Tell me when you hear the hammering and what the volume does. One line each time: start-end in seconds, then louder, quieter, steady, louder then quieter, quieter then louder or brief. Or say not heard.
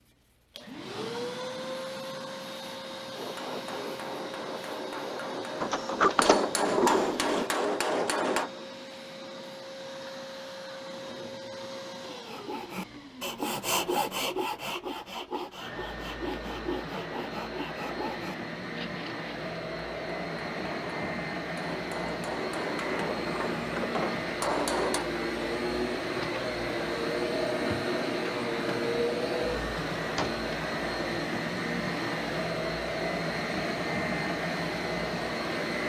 3.1-8.5 louder
19.8-25.1 louder.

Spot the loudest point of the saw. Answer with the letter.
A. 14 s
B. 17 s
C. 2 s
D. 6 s
A.